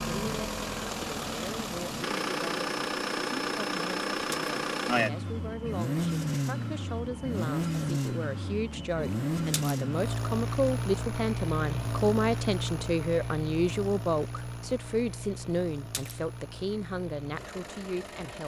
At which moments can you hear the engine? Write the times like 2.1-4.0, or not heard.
0.0-18.4.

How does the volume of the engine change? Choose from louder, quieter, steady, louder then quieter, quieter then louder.
quieter.